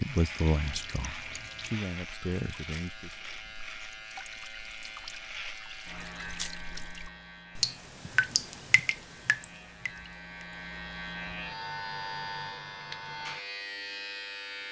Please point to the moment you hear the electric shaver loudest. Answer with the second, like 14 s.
12 s.